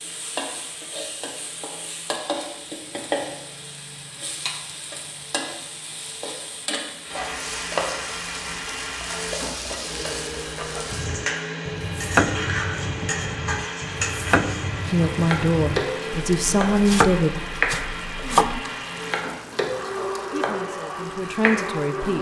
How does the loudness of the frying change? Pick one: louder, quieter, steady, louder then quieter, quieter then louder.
steady.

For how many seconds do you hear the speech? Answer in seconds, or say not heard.
4 s.